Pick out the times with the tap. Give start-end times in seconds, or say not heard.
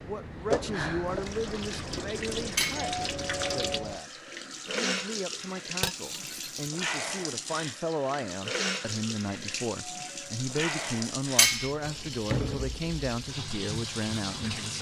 0.0-14.7.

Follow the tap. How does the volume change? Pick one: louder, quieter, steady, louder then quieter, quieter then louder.
steady.